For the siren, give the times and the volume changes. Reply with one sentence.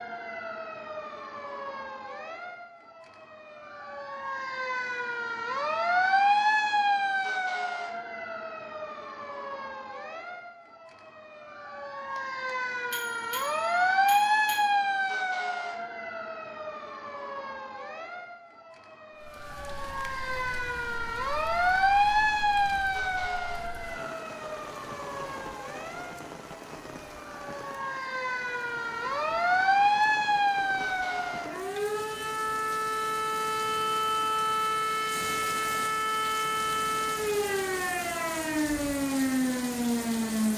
The siren can be heard from 0.0 to 40.5 s, at a steady volume.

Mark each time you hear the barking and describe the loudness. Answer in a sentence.
You can't hear the barking here.